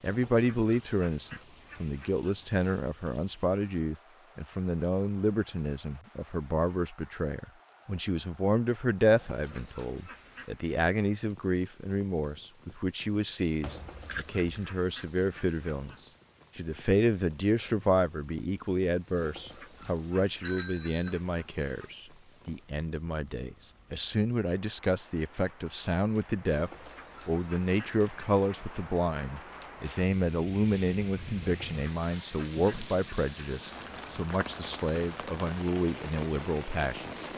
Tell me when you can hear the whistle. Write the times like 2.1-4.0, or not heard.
not heard.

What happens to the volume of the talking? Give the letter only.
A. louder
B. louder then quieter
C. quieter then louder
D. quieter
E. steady
E.